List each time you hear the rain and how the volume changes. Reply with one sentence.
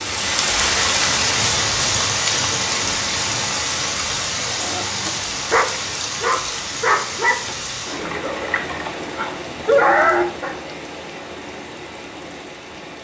You can hear the rain from 0.0 to 12.9 s, getting quieter.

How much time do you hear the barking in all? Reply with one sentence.
The barking can be heard for 6 seconds in total.